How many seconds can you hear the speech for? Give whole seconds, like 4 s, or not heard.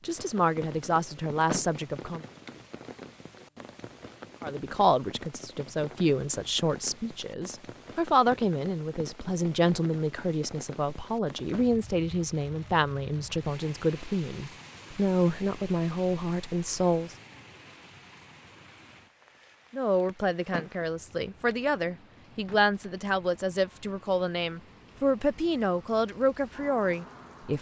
23 s.